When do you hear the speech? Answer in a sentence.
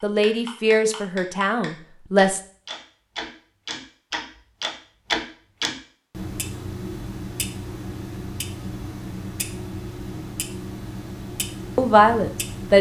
The speech can be heard from 0.0 to 2.4 s and from 11.8 to 12.7 s.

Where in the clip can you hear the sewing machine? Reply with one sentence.
You can't hear the sewing machine here.